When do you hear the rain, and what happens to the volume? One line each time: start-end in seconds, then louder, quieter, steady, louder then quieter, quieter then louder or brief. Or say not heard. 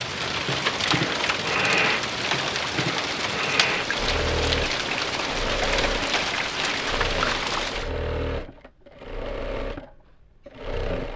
0.0-7.9 steady.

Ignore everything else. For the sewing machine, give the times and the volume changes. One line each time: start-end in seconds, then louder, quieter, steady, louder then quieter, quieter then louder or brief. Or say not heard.
0.0-11.1 quieter.